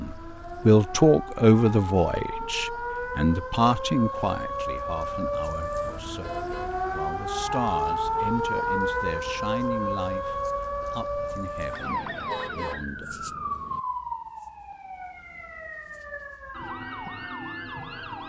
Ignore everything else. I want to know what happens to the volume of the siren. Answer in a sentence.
The loudness of the siren goes up, then down.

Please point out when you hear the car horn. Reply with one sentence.
You can hear the car horn from 5.8 to 6.7 s and from 11.8 to 13.8 s.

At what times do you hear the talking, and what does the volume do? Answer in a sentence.
You can hear the talking from 0.0 to 13.2 s, getting quieter.